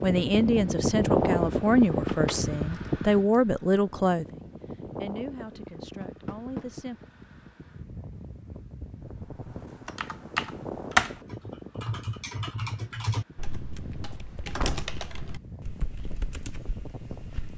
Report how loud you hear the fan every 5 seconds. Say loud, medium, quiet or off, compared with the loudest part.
loud, quiet, quiet, quiet.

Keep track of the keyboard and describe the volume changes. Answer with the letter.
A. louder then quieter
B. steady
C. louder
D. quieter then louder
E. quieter
E.